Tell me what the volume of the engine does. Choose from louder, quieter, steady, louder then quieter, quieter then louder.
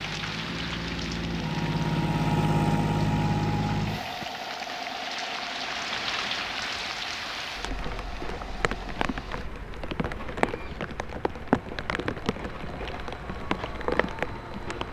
quieter.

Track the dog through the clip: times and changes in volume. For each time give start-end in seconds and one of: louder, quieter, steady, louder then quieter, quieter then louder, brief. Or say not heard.
not heard.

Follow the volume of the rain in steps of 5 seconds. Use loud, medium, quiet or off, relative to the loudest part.
medium, loud, loud.